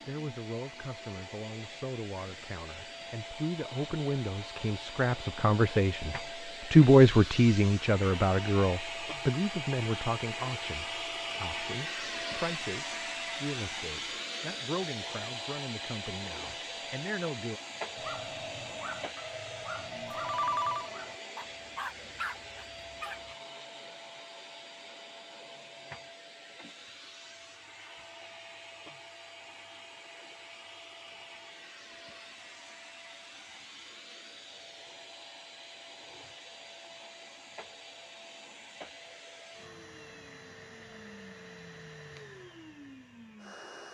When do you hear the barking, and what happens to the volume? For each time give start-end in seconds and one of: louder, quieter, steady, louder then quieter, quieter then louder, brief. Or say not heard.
17.9-23.4 steady.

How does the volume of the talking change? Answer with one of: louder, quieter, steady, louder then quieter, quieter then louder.
louder then quieter.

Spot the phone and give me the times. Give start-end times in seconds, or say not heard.
20.1-20.9.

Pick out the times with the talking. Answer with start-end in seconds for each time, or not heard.
0.1-17.6.